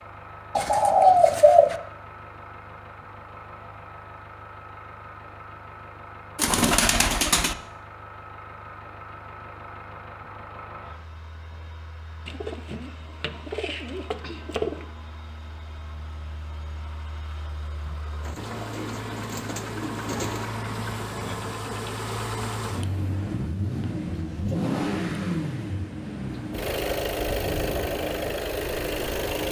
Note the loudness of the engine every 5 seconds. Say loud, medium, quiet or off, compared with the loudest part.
quiet, quiet, quiet, medium, loud, loud.